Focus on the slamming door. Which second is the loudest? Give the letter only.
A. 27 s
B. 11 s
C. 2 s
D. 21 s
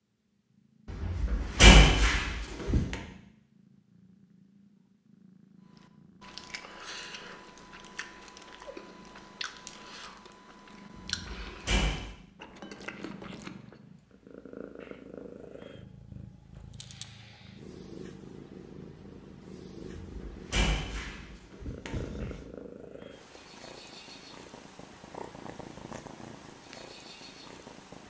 C.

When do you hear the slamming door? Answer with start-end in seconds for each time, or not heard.
0.9-3.0, 11.2-12.1, 20.0-22.4.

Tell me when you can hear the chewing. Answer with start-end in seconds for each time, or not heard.
5.7-13.8.